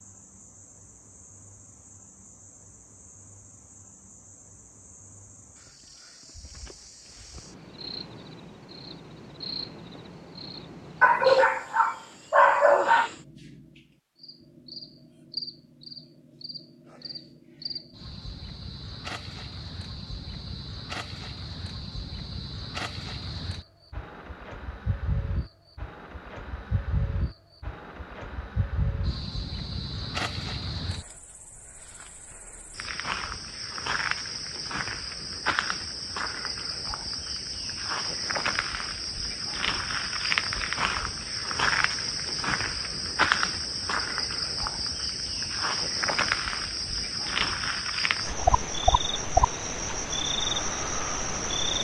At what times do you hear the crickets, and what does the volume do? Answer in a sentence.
The crickets can be heard from 0.0 to 51.8 s, getting louder.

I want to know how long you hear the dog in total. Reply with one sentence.
The dog can be heard for 2 seconds in total.